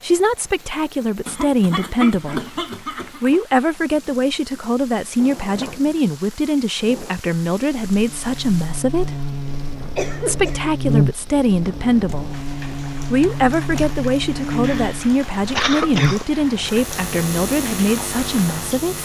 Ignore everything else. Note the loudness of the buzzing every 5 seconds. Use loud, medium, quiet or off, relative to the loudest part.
off, medium, loud, loud.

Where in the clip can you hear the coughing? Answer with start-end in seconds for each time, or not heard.
1.2-3.4, 9.2-10.7, 14.7-16.2.